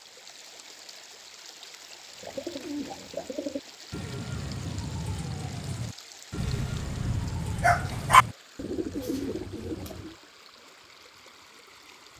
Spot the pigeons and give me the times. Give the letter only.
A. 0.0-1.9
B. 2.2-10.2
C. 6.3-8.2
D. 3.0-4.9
B.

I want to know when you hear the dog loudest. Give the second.
8 s.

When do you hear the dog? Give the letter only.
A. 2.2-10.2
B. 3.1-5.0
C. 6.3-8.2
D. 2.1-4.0
C.